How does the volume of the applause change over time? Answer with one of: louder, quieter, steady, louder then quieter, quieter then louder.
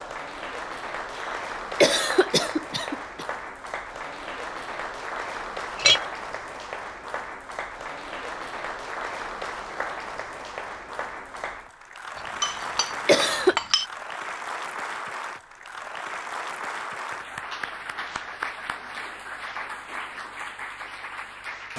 steady.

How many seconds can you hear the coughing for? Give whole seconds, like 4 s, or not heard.
2 s.